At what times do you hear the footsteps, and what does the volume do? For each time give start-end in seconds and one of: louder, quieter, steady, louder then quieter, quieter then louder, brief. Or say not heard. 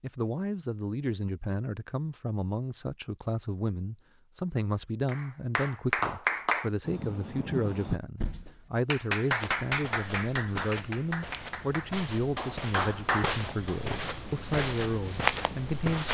9.2-16.1 louder.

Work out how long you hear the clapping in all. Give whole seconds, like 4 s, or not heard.
9 s.